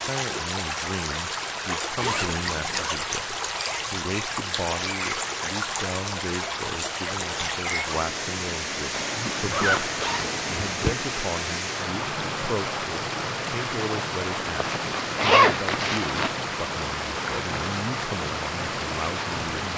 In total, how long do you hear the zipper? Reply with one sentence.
The zipper can be heard for 5 seconds in total.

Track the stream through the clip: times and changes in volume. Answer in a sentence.
The stream can be heard from 0.0 to 19.7 s, at a steady volume.